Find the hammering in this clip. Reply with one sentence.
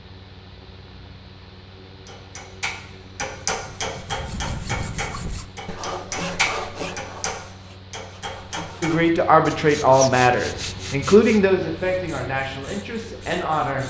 The hammering can be heard from 2.0 to 8.9 s.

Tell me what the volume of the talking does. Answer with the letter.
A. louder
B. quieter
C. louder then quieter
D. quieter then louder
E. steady
B.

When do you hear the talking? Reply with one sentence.
You can hear the talking from 8.8 to 13.8 s.